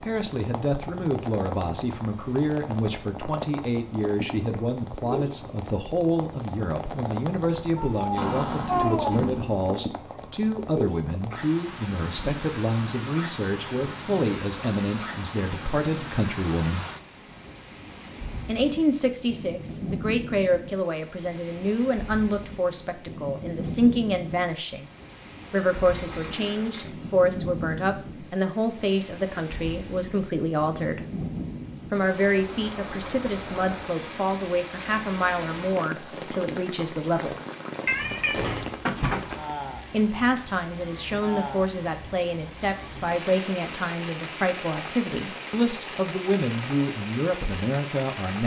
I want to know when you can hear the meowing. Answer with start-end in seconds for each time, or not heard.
7.8-9.2, 37.9-39.4.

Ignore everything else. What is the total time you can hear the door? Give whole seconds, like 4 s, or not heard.
4 s.